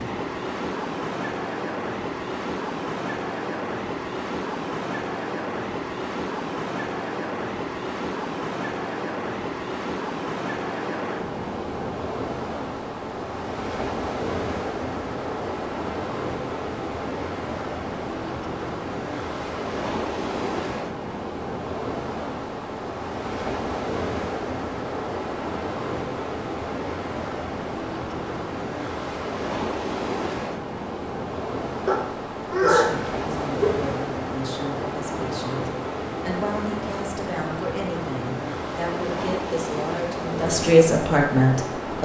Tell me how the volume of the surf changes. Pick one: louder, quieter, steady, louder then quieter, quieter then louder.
steady.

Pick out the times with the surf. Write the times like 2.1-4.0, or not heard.
0.0-41.9.